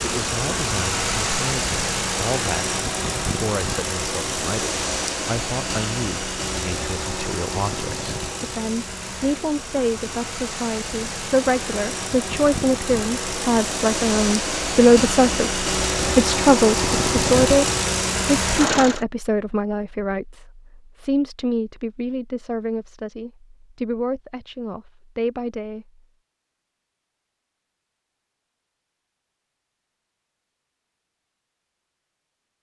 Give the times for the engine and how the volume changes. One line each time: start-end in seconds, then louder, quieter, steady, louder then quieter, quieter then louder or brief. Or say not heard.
0.0-19.1 quieter then louder.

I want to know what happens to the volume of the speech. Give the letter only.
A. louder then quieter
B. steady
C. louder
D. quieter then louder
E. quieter
A.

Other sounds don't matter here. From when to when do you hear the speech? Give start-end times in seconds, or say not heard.
0.0-26.0.